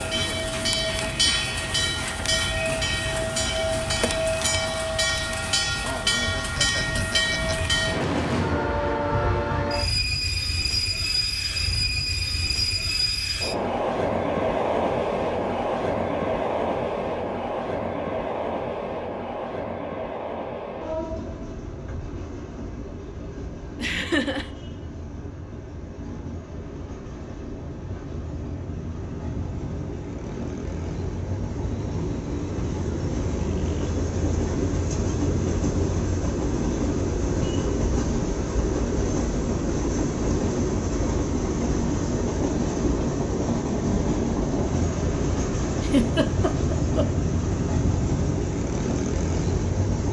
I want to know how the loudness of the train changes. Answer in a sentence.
The volume of the train goes down, then up.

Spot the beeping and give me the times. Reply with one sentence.
You can hear the beeping from 9.1 to 9.8 s.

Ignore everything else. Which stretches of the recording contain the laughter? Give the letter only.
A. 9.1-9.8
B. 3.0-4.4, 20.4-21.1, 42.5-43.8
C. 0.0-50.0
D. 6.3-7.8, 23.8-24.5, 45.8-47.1
D.